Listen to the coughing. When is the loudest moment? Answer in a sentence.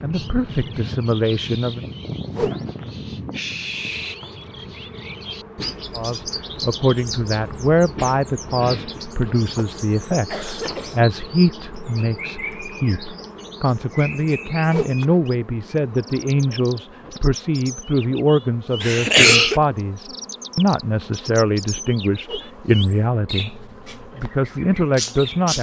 The loudest moment of the coughing is at 19 seconds.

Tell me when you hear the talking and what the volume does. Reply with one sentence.
You can hear the talking briefly from 0.0 to 1.9 s; and from 6.0 to 25.5 s, at a steady volume.